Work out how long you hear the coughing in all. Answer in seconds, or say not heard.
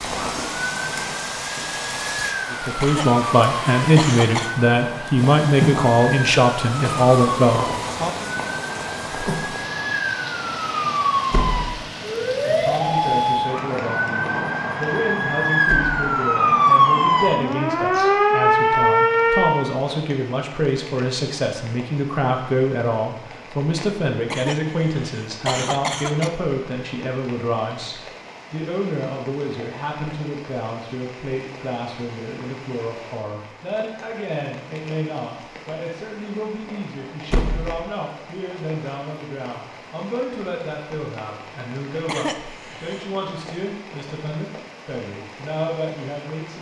5 s.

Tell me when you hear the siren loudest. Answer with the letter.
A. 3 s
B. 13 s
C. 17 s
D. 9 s
C.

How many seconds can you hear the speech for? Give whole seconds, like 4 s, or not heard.
40 s.